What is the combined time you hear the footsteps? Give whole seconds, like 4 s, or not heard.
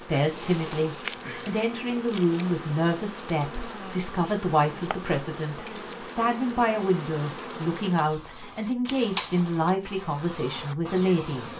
not heard.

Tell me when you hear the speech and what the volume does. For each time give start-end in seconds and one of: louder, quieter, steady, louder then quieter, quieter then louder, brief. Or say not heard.
0.0-11.5 steady.